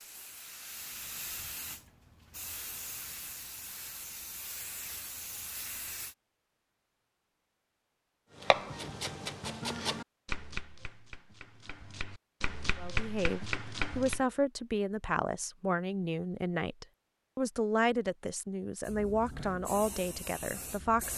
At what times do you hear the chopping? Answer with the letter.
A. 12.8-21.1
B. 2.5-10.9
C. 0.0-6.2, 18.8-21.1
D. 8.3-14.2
D.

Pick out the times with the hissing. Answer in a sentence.
The hissing can be heard from 0.0 to 6.2 s and from 18.8 to 21.1 s.